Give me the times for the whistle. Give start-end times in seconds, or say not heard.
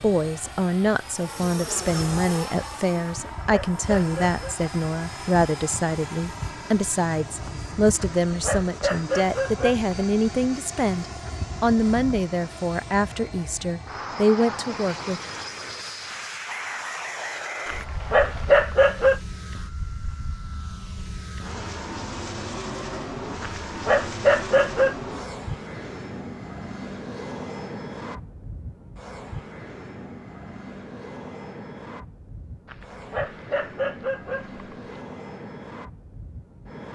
16.4-18.5.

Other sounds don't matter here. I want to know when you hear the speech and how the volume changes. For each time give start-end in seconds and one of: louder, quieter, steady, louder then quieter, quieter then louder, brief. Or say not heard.
0.0-15.2 steady.